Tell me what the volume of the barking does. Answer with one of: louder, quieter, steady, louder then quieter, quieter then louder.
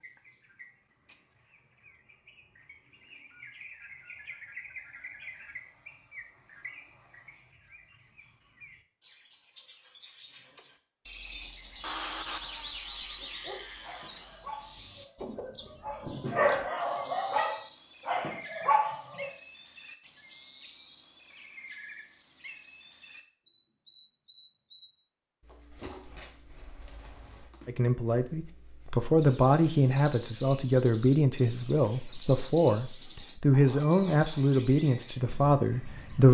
louder.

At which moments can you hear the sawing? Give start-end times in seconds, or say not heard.
11.8-14.4.